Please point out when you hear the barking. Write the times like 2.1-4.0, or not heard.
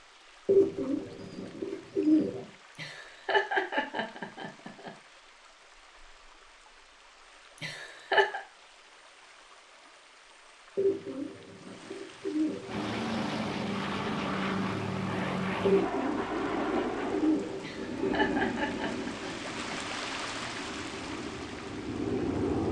not heard.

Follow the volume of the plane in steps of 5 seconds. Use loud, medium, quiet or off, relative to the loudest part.
off, off, loud, loud, loud.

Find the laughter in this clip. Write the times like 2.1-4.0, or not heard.
2.8-4.9, 7.6-8.4, 17.6-19.8.